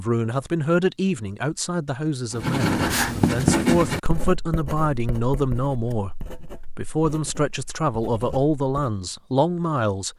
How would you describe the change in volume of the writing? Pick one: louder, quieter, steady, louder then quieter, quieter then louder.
quieter.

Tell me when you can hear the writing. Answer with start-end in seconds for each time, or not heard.
2.3-8.9.